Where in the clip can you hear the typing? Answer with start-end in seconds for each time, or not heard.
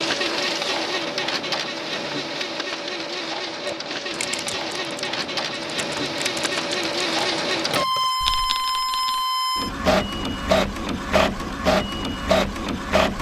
3.6-9.2.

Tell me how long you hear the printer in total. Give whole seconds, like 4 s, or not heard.
13 s.